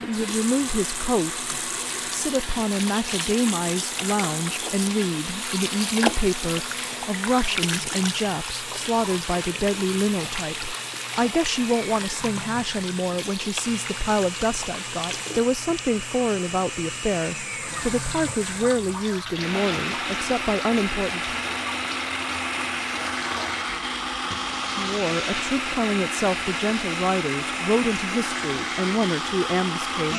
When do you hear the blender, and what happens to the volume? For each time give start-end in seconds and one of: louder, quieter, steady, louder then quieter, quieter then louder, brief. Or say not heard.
0.0-30.1 louder.